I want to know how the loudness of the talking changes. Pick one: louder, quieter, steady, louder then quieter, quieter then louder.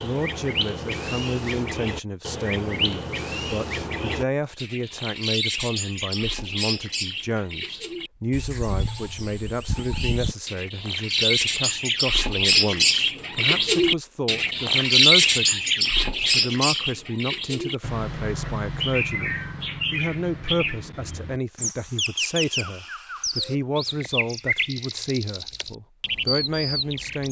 steady.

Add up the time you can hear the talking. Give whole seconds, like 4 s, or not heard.
27 s.